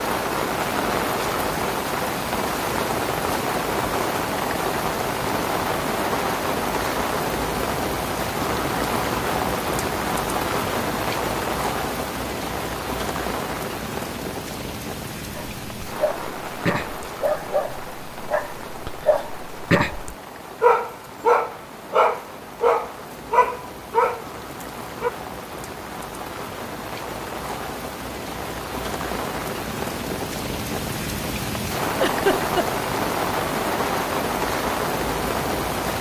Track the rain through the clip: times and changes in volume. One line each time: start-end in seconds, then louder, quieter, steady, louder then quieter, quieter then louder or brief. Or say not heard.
0.0-35.9 quieter then louder.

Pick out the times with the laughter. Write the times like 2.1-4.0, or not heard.
32.0-32.6.